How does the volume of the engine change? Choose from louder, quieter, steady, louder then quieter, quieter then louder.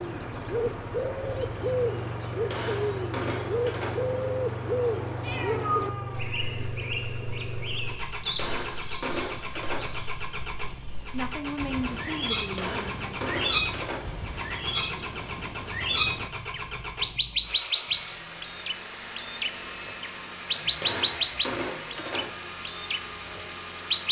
steady.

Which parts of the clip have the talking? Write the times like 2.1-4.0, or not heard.
11.1-13.2.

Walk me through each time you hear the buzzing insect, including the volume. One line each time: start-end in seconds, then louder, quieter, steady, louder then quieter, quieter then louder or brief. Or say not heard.
not heard.